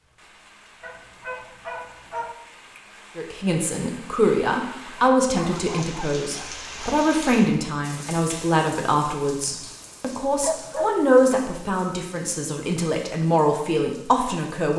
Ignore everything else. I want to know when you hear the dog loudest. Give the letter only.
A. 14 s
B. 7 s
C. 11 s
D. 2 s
C.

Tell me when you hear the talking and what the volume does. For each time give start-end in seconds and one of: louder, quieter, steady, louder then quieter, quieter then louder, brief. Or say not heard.
3.1-14.7 steady.